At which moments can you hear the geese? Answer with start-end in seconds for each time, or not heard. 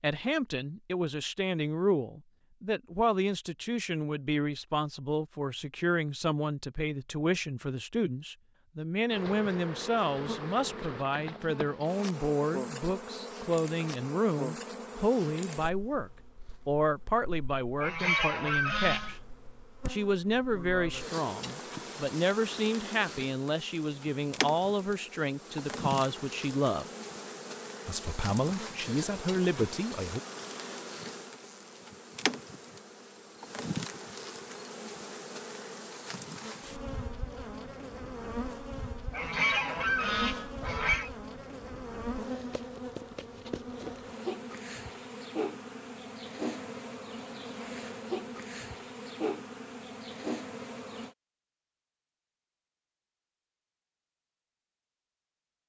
17.8-19.1, 39.1-41.1.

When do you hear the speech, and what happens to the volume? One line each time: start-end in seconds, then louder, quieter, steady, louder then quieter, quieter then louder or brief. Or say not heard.
0.0-19.1 steady
19.9-26.9 steady
27.9-30.2 brief.